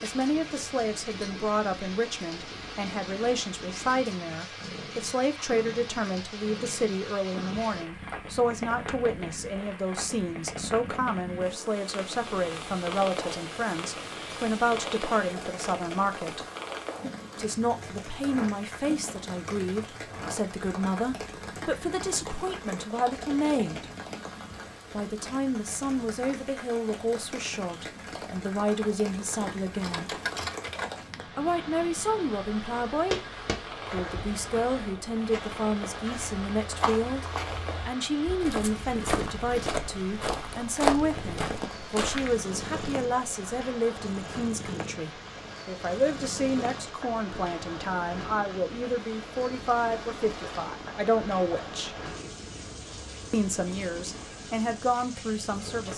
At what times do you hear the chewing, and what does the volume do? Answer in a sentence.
The chewing can't be heard in this clip.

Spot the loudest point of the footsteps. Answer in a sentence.
The volume of the footsteps peaks at 41 seconds.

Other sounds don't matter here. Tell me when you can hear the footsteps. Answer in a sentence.
The footsteps can be heard from 33.1 to 42.4 s.